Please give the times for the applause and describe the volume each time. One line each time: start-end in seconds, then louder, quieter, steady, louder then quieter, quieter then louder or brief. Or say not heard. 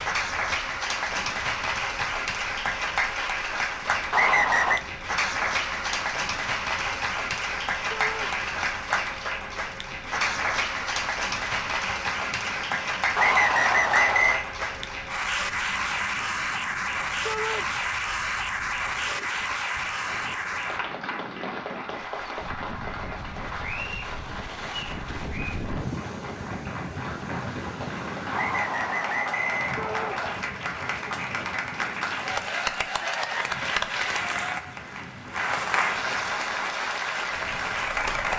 0.0-38.3 quieter then louder.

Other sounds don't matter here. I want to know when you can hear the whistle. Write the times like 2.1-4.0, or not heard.
4.1-4.8, 13.2-14.4, 28.3-30.4.